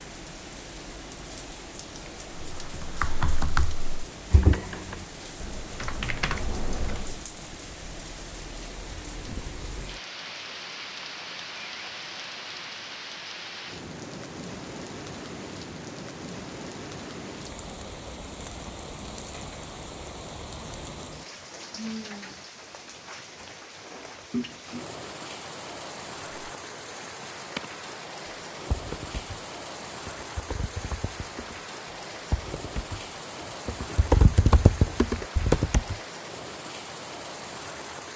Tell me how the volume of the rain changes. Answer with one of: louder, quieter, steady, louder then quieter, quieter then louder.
steady.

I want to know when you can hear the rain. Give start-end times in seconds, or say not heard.
0.0-38.1.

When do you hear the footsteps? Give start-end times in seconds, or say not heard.
not heard.